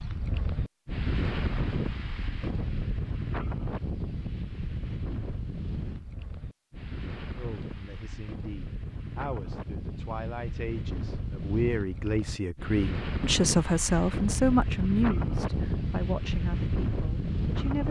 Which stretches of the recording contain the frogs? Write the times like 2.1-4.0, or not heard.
not heard.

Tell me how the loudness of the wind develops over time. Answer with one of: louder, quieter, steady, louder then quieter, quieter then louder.
quieter then louder.